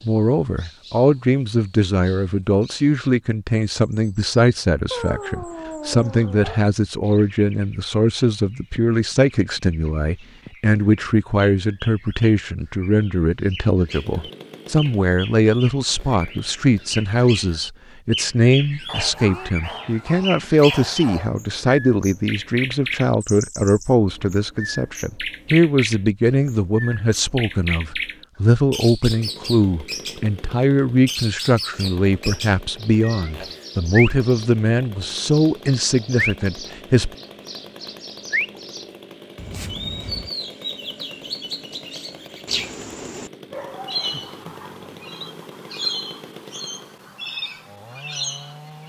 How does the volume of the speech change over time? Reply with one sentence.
The volume of the speech stays about the same.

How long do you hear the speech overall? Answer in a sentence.
The speech can be heard for 37 seconds in total.